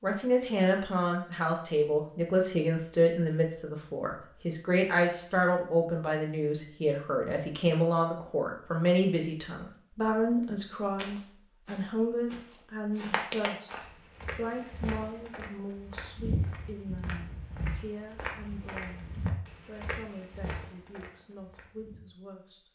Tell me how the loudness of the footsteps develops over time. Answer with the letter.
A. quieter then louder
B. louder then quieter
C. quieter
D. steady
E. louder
C.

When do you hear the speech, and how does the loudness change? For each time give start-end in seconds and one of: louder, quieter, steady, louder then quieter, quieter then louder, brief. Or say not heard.
0.0-22.7 quieter.